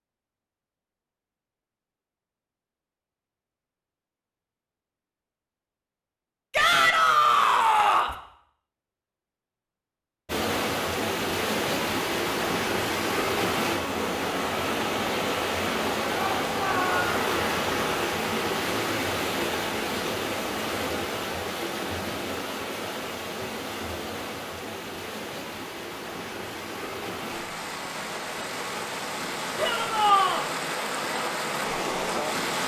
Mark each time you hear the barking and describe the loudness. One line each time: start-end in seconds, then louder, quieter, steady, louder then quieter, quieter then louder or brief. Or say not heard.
not heard.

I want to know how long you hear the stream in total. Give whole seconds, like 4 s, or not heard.
22 s.